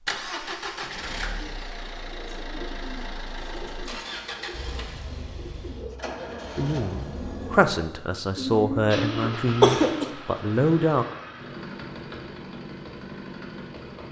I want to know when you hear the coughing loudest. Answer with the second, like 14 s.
10 s.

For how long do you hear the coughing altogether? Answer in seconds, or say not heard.
2 s.